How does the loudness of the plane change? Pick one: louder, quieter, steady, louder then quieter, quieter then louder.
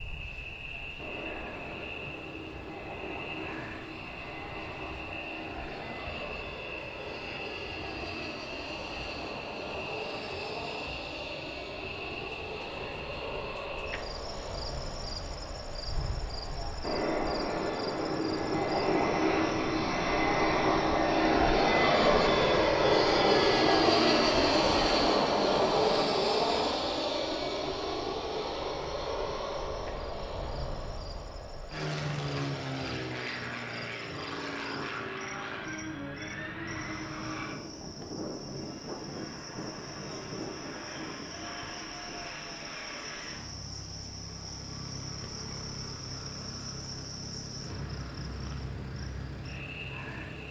louder then quieter.